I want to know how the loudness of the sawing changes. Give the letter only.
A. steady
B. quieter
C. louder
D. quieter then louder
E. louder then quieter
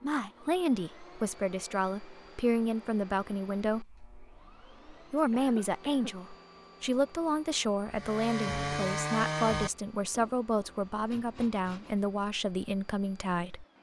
D.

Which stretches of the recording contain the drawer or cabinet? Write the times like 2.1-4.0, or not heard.
not heard.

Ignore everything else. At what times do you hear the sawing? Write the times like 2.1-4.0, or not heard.
7.9-12.0.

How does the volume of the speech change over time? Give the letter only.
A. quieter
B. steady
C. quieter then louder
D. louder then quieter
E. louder
B.